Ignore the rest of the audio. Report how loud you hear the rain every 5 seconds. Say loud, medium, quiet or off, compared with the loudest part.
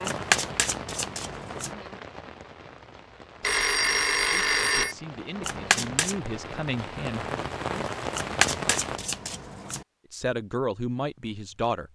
medium, loud, off.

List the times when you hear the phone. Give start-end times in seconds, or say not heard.
3.4-5.0.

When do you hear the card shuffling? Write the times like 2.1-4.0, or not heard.
0.1-1.8, 5.4-6.2, 8.2-9.8.